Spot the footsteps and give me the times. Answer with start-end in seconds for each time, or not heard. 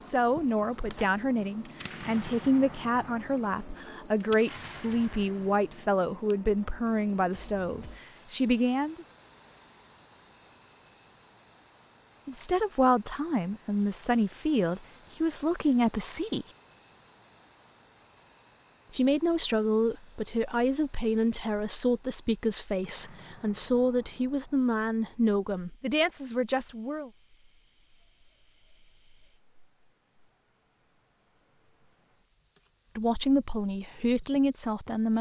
not heard.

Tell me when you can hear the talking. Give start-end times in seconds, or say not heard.
0.0-9.1, 12.2-16.4, 18.9-27.1, 33.0-35.1.